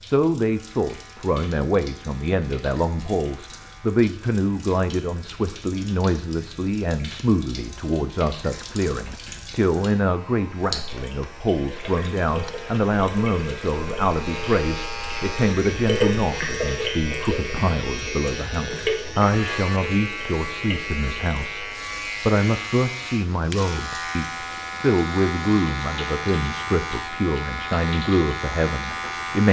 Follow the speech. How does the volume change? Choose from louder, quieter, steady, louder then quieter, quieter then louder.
steady.